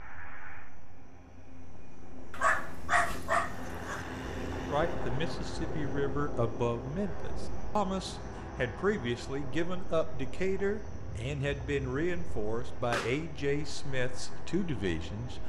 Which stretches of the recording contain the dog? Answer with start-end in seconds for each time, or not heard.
2.3-4.0.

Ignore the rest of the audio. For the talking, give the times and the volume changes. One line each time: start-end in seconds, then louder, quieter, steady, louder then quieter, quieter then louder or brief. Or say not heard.
4.7-15.4 steady.